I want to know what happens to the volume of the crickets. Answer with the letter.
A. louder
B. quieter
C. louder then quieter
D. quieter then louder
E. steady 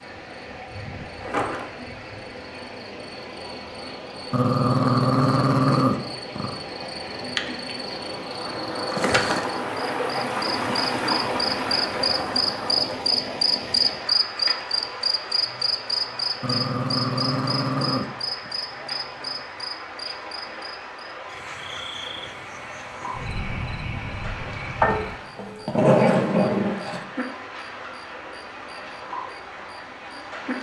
C.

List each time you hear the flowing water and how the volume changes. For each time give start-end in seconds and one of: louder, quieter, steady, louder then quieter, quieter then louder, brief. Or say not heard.
0.0-30.5 louder then quieter.